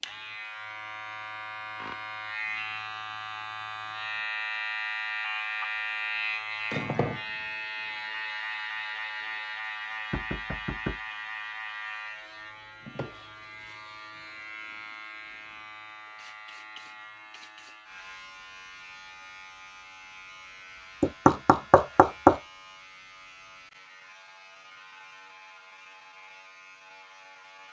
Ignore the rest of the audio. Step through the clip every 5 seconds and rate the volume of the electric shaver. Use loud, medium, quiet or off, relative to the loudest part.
loud, loud, medium, quiet, quiet, quiet.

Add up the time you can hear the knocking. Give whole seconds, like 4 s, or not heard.
2 s.